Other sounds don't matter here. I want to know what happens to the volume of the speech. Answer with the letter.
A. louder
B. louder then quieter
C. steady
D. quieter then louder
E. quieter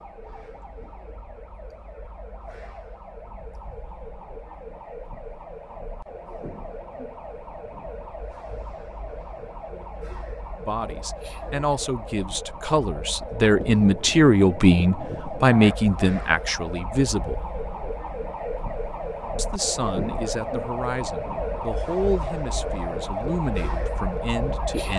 B.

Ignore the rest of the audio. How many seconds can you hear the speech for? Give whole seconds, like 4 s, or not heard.
12 s.